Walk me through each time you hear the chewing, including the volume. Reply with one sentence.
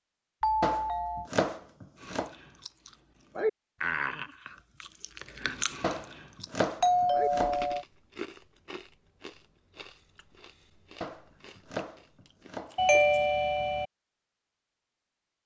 You can hear the chewing from 1.9 to 13.3 s, getting quieter.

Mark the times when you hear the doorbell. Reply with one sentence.
The doorbell can be heard from 0.4 to 1.3 s, from 6.8 to 7.8 s and from 12.8 to 13.8 s.